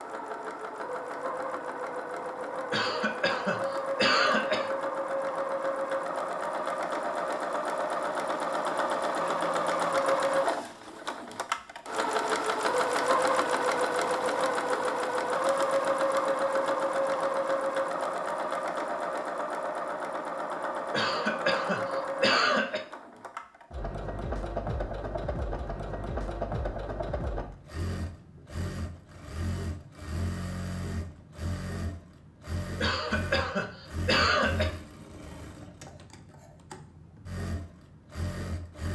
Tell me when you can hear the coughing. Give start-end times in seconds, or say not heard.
2.7-4.7, 20.9-22.9, 32.8-34.7.